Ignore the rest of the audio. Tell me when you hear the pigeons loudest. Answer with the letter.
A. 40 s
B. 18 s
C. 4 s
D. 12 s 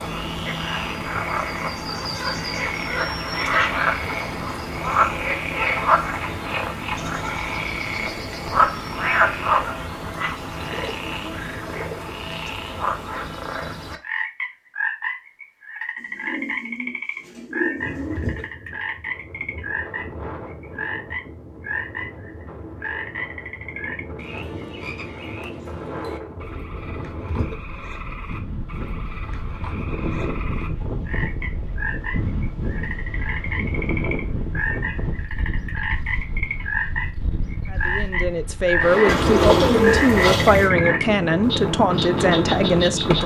A.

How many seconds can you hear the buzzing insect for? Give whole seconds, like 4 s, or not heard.
not heard.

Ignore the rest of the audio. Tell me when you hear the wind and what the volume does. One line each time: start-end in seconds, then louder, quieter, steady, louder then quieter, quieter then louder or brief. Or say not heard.
17.8-43.2 louder.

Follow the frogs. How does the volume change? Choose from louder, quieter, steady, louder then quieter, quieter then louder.
quieter then louder.